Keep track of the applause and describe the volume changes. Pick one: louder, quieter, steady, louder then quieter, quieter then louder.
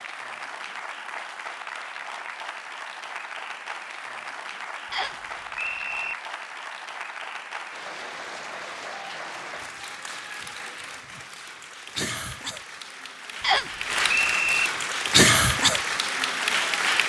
louder.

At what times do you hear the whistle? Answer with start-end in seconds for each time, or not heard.
4.9-6.2, 13.4-14.7.